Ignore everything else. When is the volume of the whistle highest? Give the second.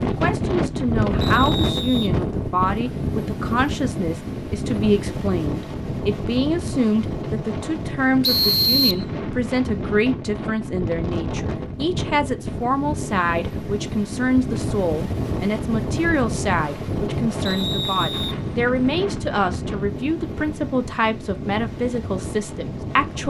9 s.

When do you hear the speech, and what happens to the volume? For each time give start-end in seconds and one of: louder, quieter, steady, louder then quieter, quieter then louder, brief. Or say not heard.
0.0-23.2 steady.